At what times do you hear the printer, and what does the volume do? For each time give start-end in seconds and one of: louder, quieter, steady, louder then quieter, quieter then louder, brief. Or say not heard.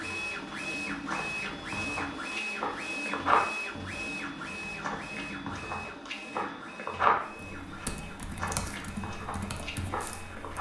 0.0-10.5 quieter.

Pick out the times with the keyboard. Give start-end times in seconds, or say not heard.
7.2-10.5.